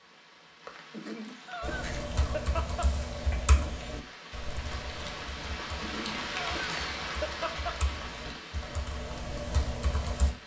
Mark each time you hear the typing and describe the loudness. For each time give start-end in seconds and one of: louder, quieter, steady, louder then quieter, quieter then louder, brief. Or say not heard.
1.6-10.3 quieter then louder.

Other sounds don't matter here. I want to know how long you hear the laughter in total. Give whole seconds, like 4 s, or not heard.
4 s.